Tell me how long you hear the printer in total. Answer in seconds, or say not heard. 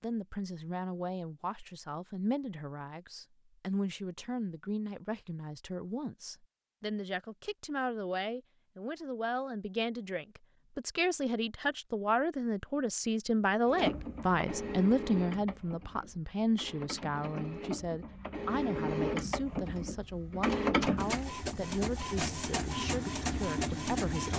11 s.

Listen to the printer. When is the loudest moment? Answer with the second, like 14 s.
21 s.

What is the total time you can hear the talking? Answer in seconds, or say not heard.
24 s.